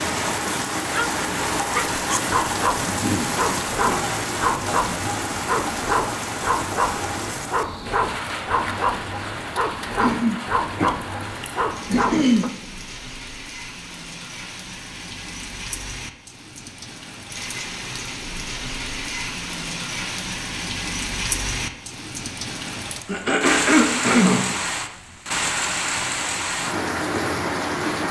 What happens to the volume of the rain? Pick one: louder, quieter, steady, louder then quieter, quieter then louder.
quieter then louder.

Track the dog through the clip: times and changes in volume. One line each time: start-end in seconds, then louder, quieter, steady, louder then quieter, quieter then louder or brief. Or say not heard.
0.9-12.5 steady.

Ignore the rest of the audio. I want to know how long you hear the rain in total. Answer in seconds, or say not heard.
28 s.